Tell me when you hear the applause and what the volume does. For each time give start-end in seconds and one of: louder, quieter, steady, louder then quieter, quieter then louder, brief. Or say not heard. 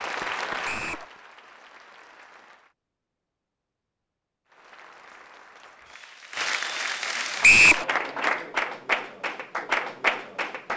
0.0-2.8 brief
4.5-10.7 louder.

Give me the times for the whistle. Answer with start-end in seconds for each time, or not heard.
0.7-1.1, 7.4-7.8.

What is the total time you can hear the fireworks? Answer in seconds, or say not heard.
not heard.